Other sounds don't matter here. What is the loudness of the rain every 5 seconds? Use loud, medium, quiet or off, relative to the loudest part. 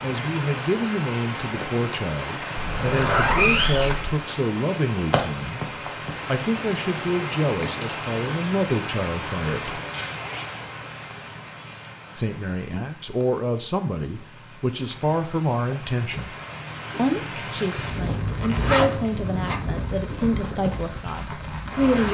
loud, loud, medium, loud, loud.